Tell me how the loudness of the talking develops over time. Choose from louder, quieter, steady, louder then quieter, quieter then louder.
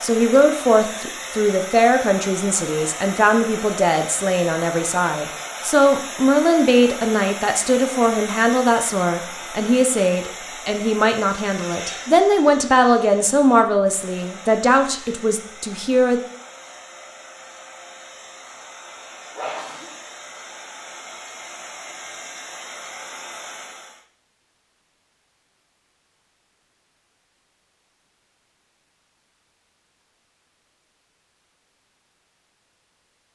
steady.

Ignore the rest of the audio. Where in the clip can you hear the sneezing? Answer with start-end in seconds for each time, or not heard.
19.4-19.9.